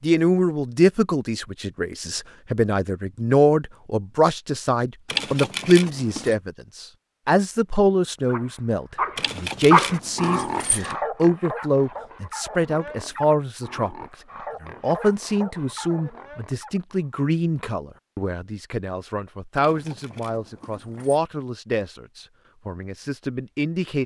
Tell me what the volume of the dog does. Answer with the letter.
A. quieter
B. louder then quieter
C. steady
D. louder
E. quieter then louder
A.